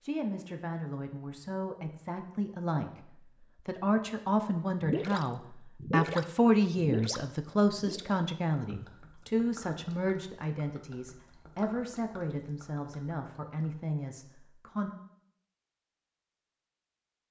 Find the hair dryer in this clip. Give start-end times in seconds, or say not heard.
not heard.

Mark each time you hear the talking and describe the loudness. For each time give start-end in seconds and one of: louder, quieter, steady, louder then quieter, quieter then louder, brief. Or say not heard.
0.0-14.9 louder then quieter.